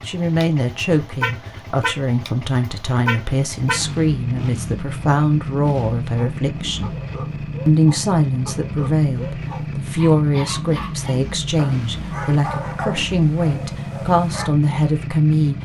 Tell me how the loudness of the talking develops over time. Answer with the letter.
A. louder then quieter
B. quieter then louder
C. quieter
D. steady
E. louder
D.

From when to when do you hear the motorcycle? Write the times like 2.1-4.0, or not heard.
0.0-15.6.